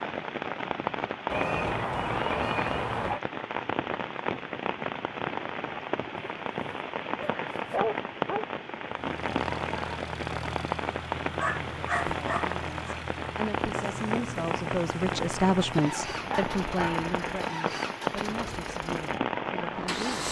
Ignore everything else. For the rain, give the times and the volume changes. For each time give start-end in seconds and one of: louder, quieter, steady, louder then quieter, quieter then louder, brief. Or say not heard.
0.0-20.2 steady.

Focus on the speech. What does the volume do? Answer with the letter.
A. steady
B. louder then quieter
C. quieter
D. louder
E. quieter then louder
B.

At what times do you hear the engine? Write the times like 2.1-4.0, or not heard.
8.8-20.2.